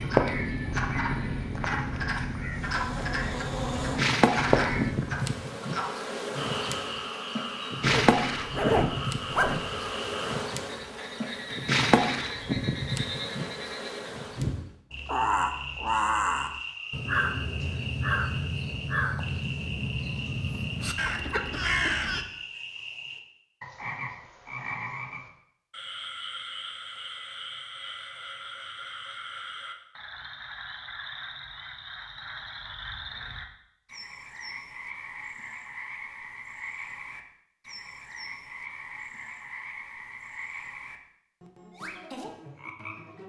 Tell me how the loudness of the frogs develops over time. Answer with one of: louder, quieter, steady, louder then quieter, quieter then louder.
quieter.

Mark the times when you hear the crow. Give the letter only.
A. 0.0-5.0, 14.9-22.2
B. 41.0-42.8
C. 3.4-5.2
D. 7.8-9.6
A.